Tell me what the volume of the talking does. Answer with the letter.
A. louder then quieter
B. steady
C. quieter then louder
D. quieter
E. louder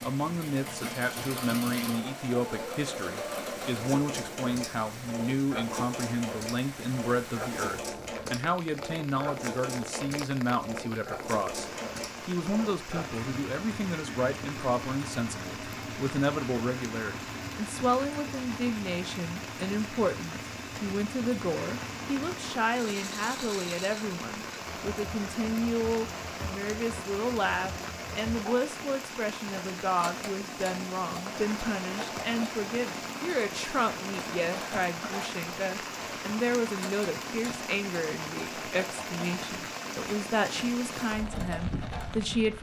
B.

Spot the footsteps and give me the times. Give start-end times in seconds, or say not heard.
not heard.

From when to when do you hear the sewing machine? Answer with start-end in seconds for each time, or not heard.
0.0-42.3.